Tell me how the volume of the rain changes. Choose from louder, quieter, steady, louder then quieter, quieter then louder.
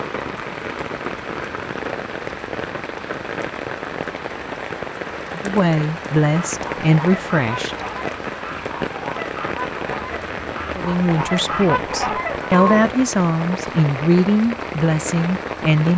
steady.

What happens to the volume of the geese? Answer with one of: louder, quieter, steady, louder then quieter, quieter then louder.
louder.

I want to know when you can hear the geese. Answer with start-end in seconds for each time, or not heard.
6.3-12.8.